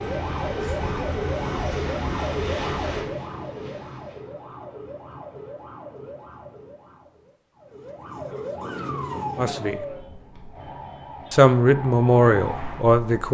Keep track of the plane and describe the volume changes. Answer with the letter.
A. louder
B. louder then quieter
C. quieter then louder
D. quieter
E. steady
D.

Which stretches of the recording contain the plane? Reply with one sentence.
The plane can be heard from 0.0 to 4.2 s.